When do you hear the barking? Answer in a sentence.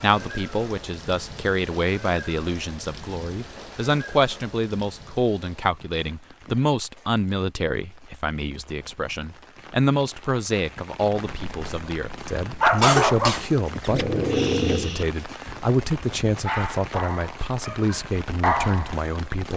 You can hear the barking from 11.1 to 18.9 s.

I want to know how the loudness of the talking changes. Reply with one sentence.
The loudness of the talking stays about the same.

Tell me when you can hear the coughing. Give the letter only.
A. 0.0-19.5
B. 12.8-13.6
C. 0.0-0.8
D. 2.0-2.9
B.